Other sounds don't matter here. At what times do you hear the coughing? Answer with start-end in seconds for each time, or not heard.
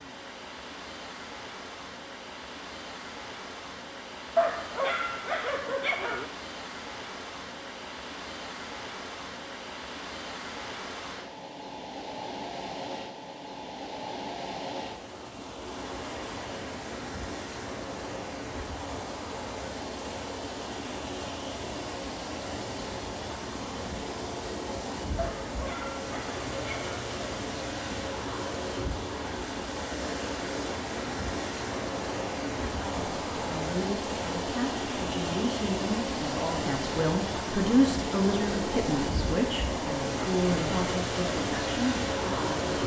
not heard.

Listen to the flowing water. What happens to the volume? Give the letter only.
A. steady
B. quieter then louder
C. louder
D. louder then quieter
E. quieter
C.